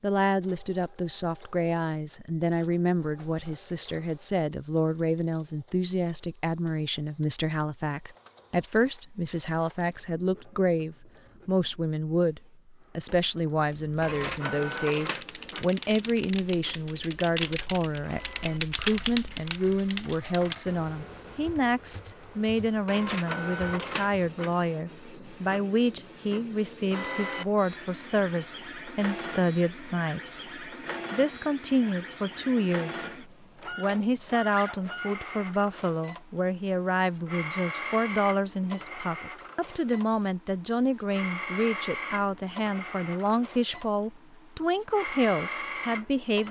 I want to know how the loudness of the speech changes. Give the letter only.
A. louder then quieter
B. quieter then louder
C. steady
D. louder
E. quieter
C.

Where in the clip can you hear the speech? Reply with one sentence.
The speech can be heard from 0.0 to 46.4 s.